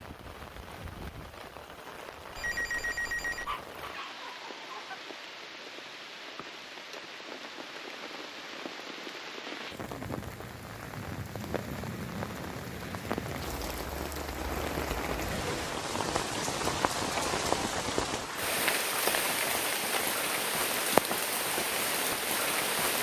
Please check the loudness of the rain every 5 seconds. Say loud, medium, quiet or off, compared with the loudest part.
quiet, quiet, medium, loud, loud.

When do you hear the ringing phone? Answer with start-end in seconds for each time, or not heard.
2.4-3.5.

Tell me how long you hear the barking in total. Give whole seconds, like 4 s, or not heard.
2 s.